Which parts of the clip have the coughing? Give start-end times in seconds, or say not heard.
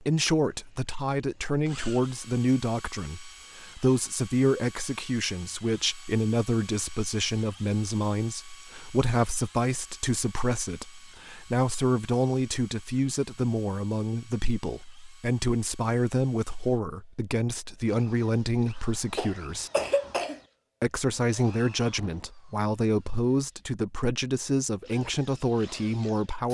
19.1-20.4.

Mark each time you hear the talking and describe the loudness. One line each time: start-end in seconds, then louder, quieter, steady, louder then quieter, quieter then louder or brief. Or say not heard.
0.0-19.7 steady
20.8-26.4 steady.